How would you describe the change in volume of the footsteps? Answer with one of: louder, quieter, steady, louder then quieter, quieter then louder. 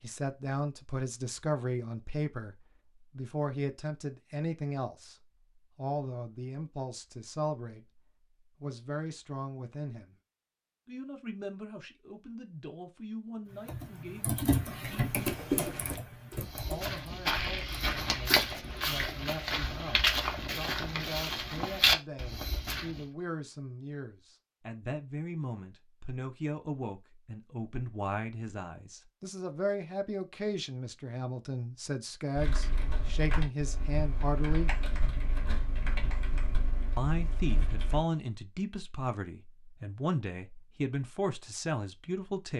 louder.